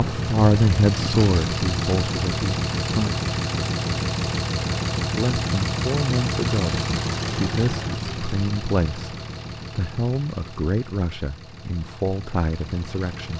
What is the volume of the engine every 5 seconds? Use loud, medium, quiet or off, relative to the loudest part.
loud, loud, quiet.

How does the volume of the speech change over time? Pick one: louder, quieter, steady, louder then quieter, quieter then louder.
quieter.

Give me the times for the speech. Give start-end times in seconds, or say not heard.
0.0-3.1, 5.0-13.3.